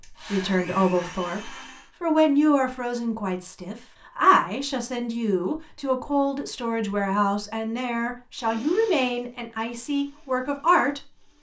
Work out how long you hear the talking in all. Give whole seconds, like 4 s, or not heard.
11 s.